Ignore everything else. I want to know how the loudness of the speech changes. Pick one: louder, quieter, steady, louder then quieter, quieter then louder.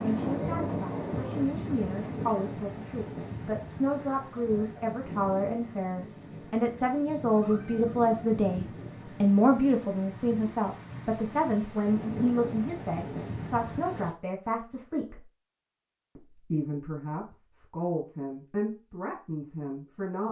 louder then quieter.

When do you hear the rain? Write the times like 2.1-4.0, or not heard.
0.0-14.2.